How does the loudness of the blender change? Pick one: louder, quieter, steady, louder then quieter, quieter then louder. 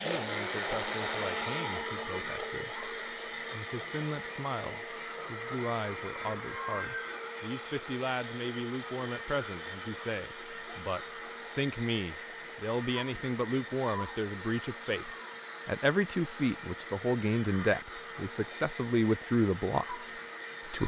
quieter.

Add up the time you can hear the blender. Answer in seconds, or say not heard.
21 s.